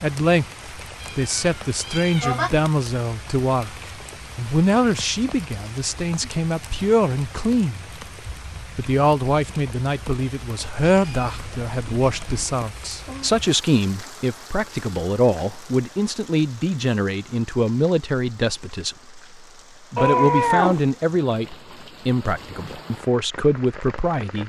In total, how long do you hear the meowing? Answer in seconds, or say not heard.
4 s.